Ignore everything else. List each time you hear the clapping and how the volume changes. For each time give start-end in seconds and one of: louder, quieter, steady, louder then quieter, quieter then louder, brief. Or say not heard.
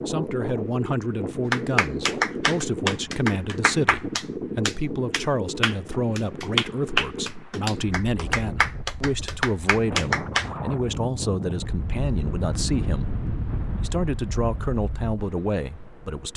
1.5-10.5 steady.